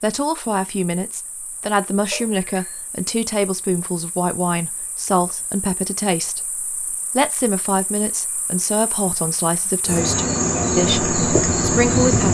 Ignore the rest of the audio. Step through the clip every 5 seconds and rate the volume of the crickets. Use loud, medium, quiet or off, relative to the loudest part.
quiet, quiet, loud.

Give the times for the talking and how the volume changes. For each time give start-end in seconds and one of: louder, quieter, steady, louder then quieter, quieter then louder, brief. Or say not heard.
0.0-12.3 steady.